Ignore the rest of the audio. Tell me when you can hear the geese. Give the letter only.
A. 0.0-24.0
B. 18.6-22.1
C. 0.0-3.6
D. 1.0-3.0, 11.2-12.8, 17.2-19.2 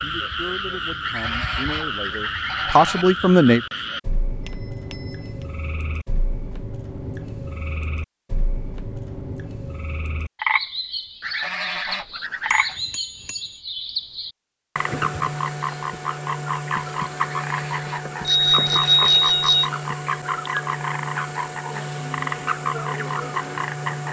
D.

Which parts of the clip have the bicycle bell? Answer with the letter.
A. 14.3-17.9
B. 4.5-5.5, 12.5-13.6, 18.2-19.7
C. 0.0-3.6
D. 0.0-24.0
B.